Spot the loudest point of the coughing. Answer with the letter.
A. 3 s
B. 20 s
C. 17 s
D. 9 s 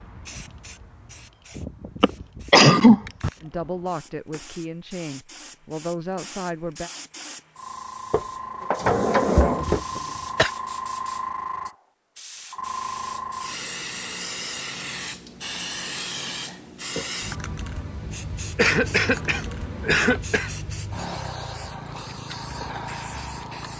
A.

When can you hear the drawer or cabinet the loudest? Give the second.
9 s.